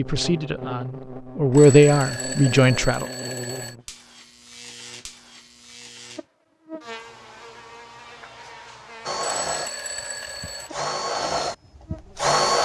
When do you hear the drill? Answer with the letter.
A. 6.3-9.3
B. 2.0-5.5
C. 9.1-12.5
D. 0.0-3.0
C.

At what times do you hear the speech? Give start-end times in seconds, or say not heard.
0.0-3.0.